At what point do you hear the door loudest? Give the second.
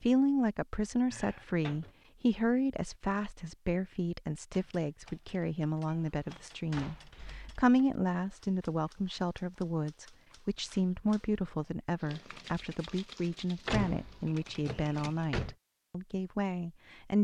14 s.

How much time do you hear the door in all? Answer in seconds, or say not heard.
4 s.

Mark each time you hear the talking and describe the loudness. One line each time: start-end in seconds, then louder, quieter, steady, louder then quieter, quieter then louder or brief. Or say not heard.
0.0-17.1 steady.